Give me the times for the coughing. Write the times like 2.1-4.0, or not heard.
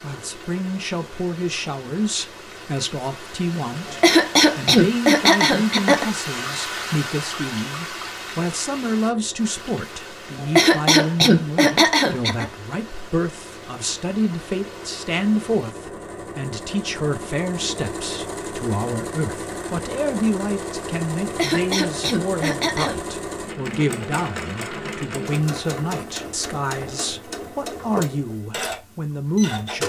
3.9-6.0, 10.4-12.4, 21.2-23.0.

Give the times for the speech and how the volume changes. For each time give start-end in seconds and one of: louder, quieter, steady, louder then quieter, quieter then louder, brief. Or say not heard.
0.0-29.8 steady.